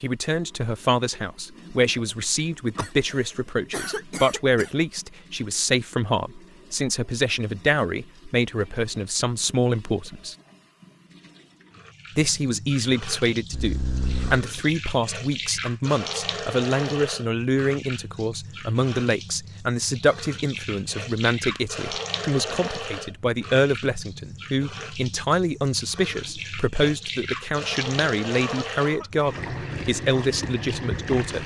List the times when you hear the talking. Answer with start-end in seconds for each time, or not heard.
0.0-10.3, 12.2-31.4.